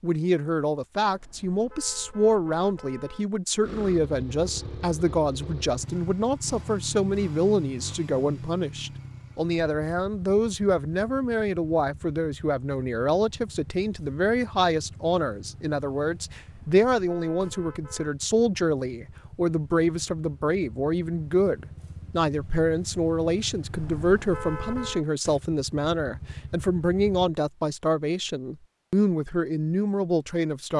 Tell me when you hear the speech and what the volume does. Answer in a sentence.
The speech can be heard from 0.0 to 30.7 s, at a steady volume.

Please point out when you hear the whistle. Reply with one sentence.
The whistle can't be heard in this clip.